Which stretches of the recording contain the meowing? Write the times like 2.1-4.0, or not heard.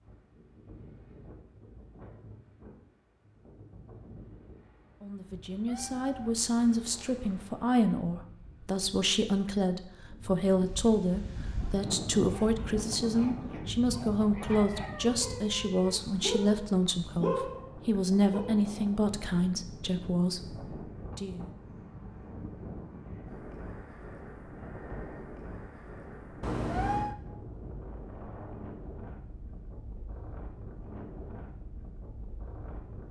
5.5-7.5, 14.2-16.1, 26.4-27.1.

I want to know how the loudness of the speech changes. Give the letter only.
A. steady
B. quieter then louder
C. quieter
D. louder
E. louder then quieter
A.